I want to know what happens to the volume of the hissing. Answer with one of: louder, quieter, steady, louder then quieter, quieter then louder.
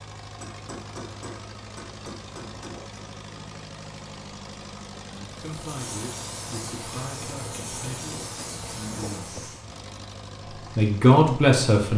steady.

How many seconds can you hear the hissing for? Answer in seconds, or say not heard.
4 s.